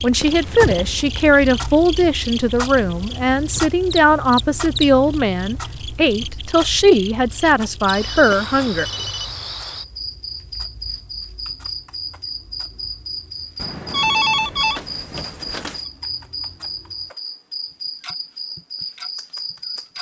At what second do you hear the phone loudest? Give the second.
14 s.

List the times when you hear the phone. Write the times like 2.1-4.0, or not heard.
0.2-1.1, 7.8-9.4, 13.6-15.8.